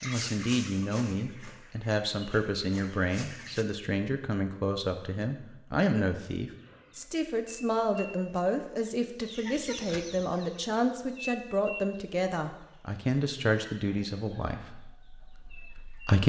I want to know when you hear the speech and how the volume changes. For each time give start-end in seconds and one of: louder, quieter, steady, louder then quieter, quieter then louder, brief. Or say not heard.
0.0-16.2 steady.